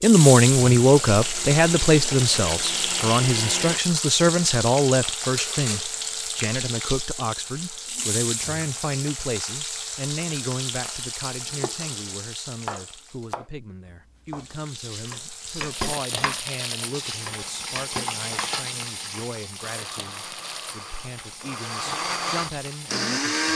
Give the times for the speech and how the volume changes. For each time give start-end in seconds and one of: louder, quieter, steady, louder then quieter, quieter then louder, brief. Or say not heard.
0.0-23.5 quieter.